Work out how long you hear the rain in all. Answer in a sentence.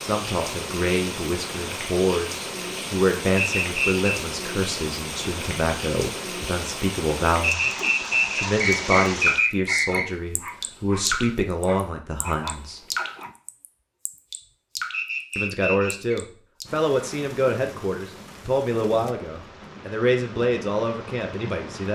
You can hear the rain for 22 seconds altogether.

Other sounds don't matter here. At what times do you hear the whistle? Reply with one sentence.
The whistle can be heard from 3.4 to 4.0 s, from 7.4 to 10.2 s and from 14.9 to 16.1 s.